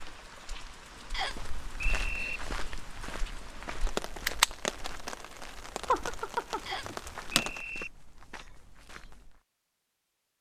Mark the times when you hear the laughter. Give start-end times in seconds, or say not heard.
5.8-7.5.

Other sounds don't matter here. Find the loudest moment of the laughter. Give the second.
6 s.